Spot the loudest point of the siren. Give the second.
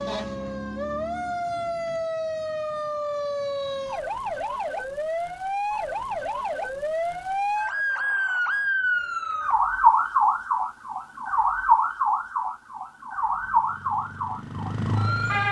10 s.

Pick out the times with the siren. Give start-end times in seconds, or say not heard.
0.0-15.4.